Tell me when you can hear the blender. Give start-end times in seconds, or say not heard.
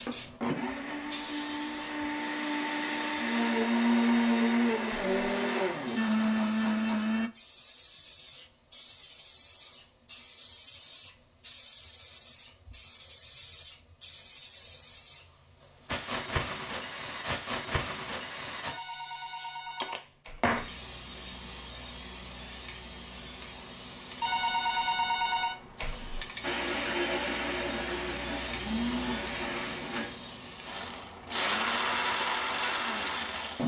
0.0-7.3, 26.4-33.6.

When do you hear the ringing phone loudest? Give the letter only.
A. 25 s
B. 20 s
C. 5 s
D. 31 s
A.